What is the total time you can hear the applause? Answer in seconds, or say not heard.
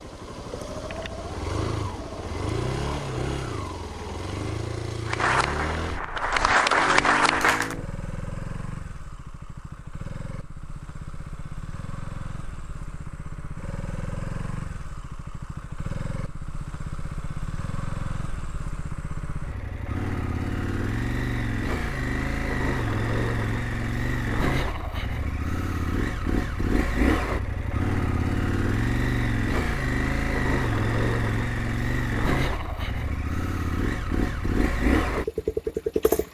3 s.